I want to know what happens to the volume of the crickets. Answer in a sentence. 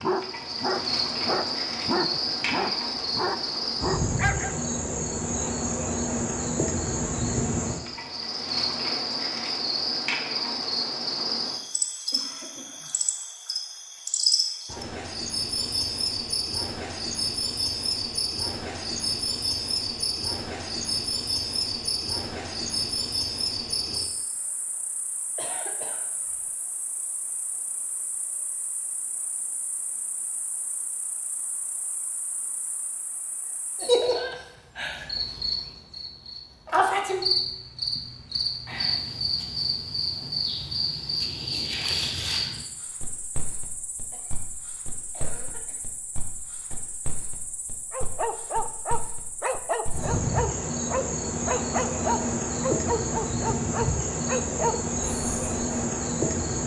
The loudness of the crickets goes down, then up.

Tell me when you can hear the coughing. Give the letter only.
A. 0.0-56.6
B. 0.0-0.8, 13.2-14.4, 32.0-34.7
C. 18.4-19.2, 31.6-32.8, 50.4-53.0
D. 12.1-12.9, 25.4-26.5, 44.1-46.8
D.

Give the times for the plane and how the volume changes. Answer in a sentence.
You can't hear the plane here.